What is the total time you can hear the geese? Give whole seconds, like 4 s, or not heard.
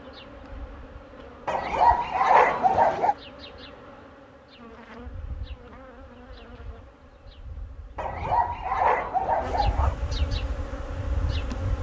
not heard.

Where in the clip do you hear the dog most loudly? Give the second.
2 s.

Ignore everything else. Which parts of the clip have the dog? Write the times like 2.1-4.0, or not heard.
1.4-3.1, 8.0-9.9.